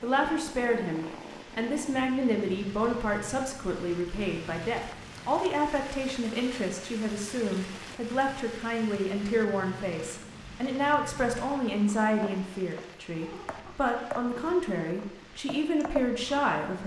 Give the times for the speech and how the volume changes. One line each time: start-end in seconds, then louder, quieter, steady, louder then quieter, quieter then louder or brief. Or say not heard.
0.0-16.8 steady.